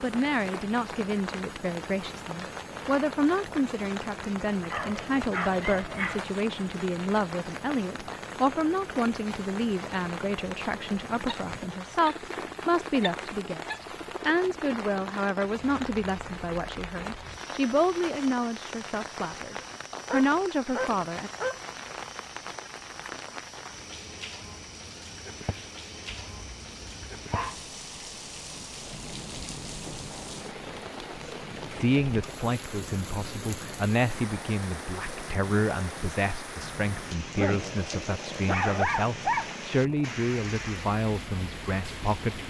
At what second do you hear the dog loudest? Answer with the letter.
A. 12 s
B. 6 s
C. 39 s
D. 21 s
C.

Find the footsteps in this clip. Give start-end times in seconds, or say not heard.
not heard.